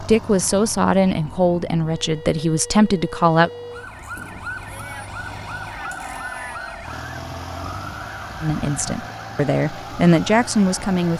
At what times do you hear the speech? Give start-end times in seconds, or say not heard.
0.0-3.5, 8.4-11.1.